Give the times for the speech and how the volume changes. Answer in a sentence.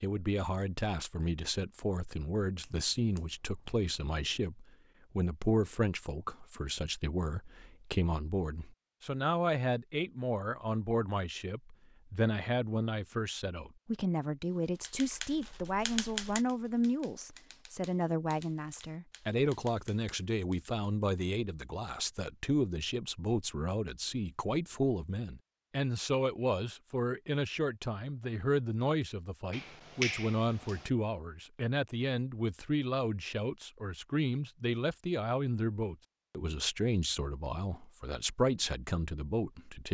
You can hear the speech from 0.0 to 39.8 s, at a steady volume.